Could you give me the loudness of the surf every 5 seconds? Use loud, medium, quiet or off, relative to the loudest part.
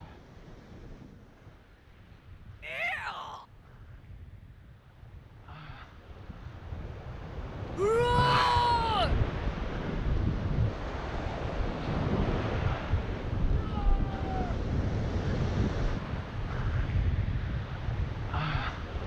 quiet, loud, loud, loud.